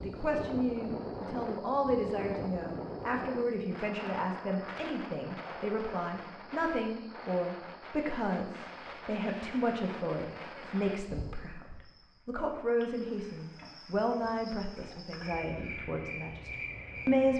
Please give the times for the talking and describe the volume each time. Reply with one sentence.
The talking can be heard from 0.0 to 11.7 s, at a steady volume; and from 12.2 to 17.3 s, getting quieter.